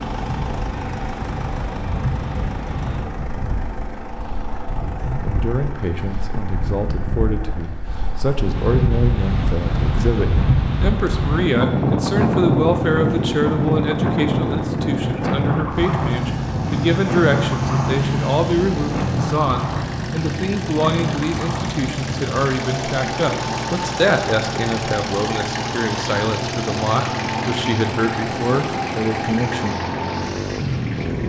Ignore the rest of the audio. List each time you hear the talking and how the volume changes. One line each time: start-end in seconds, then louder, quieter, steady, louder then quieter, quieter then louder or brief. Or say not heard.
5.0-29.8 steady.